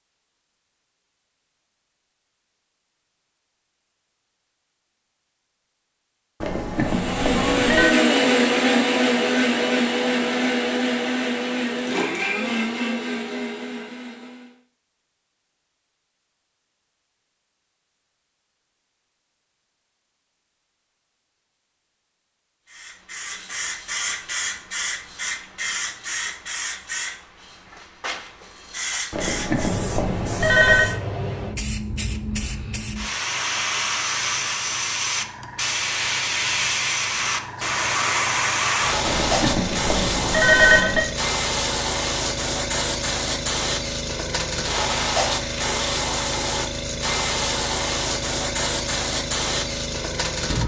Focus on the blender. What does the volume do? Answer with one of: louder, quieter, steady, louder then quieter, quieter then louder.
quieter.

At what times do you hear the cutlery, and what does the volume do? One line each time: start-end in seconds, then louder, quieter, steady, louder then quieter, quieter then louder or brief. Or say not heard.
not heard.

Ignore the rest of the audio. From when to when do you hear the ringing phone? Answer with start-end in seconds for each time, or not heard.
6.4-7.9, 29.1-30.9, 39.0-41.0.